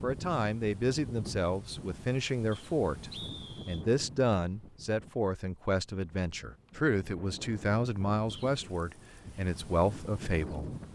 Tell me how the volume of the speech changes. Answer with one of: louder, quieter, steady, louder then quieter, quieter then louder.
steady.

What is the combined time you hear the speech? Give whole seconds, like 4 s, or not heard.
11 s.